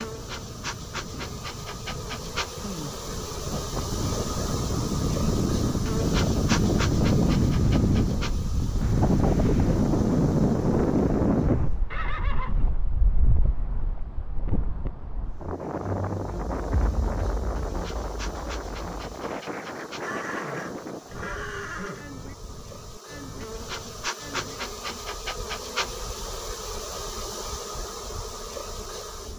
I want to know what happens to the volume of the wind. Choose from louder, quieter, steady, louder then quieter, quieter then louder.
louder then quieter.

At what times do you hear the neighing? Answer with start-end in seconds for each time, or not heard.
11.9-12.7, 20.0-22.1.